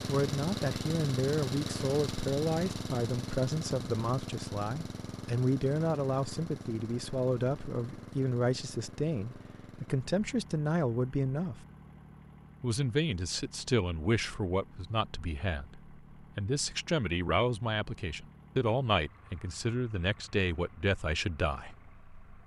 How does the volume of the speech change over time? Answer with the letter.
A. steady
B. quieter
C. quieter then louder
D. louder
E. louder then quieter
A.